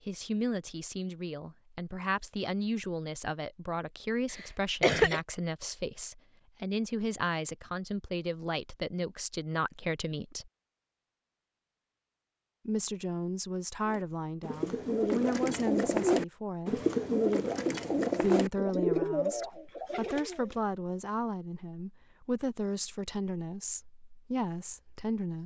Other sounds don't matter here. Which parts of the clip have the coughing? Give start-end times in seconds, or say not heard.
4.3-5.2.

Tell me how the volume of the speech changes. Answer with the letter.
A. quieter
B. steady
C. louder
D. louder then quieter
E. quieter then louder
B.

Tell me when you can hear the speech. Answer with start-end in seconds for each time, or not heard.
0.1-10.5, 12.7-16.8, 18.2-25.4.